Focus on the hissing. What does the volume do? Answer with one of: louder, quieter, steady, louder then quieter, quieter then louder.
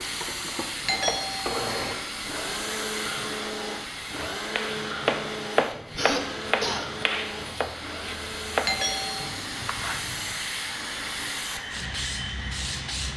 quieter then louder.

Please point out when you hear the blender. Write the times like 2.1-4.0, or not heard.
0.0-13.1.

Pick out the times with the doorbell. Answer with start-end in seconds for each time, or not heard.
0.8-1.7, 8.7-9.3.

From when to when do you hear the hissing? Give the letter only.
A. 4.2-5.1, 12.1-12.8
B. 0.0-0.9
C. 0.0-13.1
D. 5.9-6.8
C.